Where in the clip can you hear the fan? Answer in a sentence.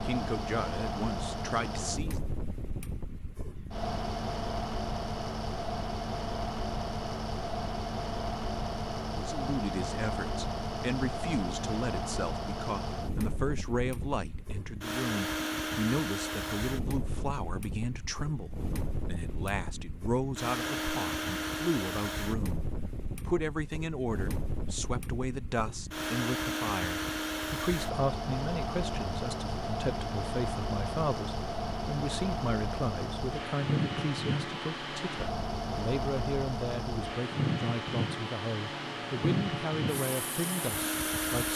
The fan can be heard from 0.0 to 41.5 s.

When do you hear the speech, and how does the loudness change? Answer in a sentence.
You can hear the speech briefly from 0.0 to 2.2 s; from 9.1 to 22.6 s, at a steady volume; and from 23.2 to 41.5 s, at a steady volume.